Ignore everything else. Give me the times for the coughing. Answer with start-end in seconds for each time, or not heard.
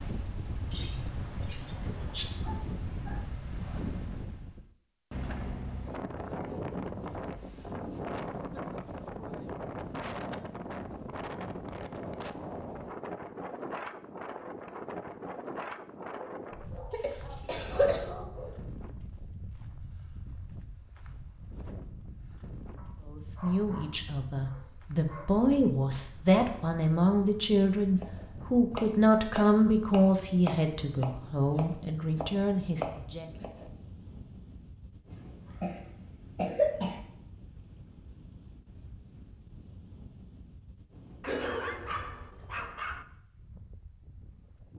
0.7-2.2, 16.9-18.1, 35.6-37.0.